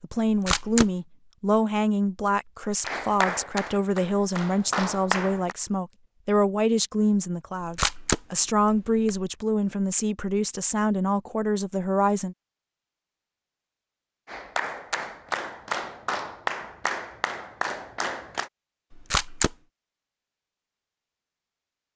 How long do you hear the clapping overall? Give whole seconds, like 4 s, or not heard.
7 s.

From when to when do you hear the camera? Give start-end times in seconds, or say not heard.
0.2-0.9, 7.6-9.3, 18.9-19.6.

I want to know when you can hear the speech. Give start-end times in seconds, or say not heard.
0.0-12.3.